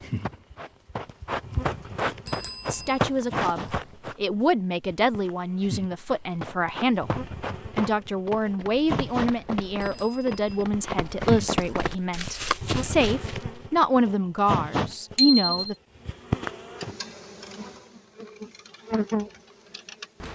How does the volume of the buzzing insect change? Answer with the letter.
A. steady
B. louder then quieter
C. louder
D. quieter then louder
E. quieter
C.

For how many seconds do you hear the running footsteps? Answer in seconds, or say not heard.
12 s.